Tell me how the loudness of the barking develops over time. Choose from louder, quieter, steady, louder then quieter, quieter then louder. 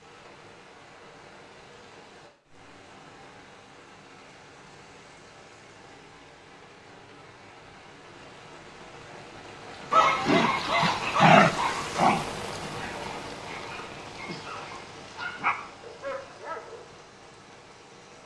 quieter then louder.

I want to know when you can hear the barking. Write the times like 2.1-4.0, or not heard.
9.9-17.0.